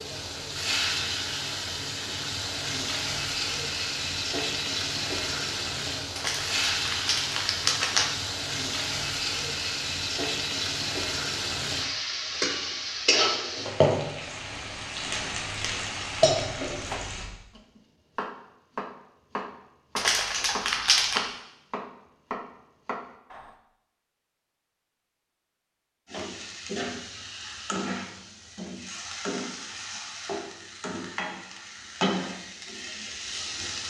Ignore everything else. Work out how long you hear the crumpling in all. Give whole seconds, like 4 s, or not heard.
3 s.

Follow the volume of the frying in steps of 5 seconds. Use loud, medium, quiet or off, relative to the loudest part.
loud, loud, loud, loud, off, medium, medium.